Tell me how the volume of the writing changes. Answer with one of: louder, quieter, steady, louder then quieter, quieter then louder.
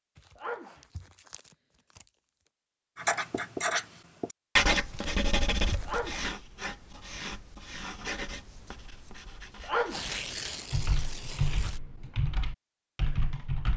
quieter.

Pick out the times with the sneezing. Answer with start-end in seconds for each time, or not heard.
0.3-0.8, 5.8-6.3, 9.6-10.2.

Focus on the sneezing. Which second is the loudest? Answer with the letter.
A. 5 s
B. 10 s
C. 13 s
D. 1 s
B.